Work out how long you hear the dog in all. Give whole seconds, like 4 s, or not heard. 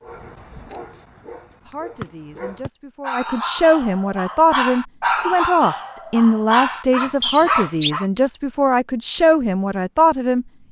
8 s.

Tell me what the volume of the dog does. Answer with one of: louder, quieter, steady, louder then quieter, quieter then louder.
louder.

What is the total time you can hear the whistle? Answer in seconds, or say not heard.
2 s.